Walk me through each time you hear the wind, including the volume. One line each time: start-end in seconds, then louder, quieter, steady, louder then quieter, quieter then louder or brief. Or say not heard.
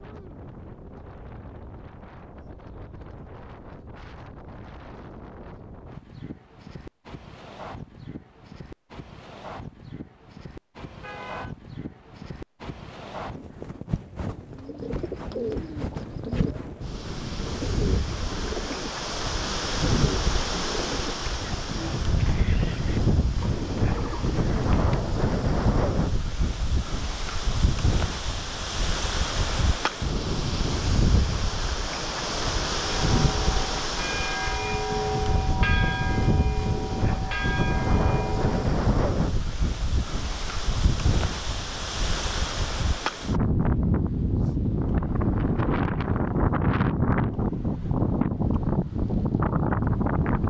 0.0-50.4 louder.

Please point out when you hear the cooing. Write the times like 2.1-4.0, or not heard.
14.5-25.1.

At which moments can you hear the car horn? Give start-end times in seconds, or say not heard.
10.8-11.6.